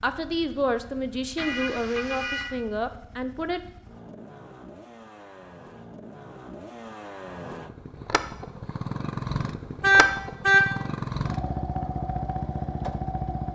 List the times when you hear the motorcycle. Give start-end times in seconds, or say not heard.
0.0-13.5.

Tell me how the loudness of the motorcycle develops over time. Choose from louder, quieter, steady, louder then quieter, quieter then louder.
louder.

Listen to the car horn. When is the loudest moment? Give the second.
10 s.